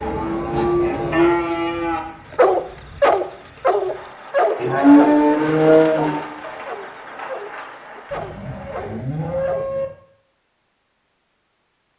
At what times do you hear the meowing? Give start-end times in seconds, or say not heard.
not heard.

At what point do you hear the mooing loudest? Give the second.
5 s.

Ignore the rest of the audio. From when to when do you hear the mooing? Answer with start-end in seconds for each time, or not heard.
0.0-2.0, 4.5-6.2, 8.1-9.8.